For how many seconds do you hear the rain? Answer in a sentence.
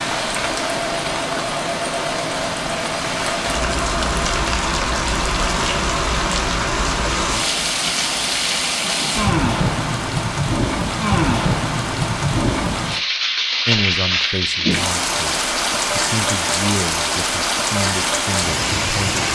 The rain can be heard for 19 seconds in total.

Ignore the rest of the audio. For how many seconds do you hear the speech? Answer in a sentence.
You can hear the speech for 5 seconds altogether.